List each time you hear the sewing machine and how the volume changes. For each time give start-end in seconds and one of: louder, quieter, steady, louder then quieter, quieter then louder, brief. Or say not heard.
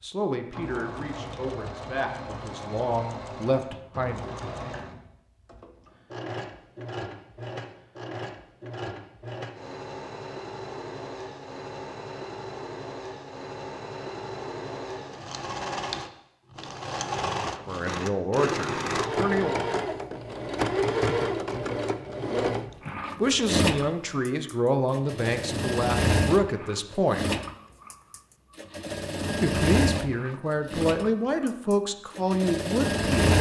0.0-33.3 louder.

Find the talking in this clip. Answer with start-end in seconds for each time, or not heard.
0.0-4.2, 17.6-19.6, 23.1-27.3, 29.4-33.3.